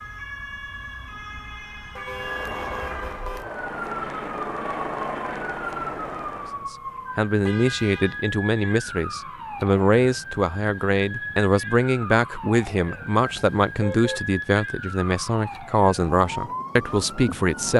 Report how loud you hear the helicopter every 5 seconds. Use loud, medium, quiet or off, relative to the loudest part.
loud, loud, off, off.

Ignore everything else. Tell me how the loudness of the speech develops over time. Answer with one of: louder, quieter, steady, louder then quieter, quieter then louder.
steady.